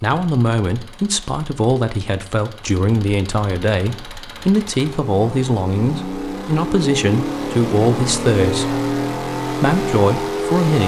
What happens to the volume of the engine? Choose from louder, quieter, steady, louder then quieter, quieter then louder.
louder.